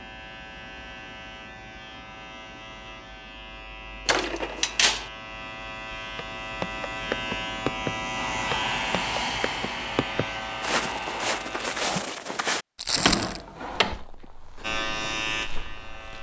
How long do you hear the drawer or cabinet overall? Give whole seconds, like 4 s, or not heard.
2 s.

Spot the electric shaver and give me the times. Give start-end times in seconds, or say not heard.
0.0-11.9, 14.6-16.1.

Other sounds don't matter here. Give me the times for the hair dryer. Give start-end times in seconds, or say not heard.
8.2-11.4.